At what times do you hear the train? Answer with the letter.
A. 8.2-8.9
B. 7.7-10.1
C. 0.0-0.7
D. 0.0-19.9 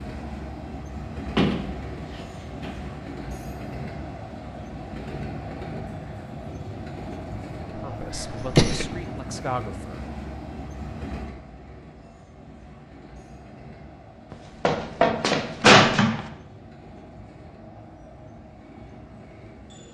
D.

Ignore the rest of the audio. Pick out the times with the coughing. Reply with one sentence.
You can hear the coughing from 8.2 to 8.9 s.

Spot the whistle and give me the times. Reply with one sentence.
The whistle can't be heard in this clip.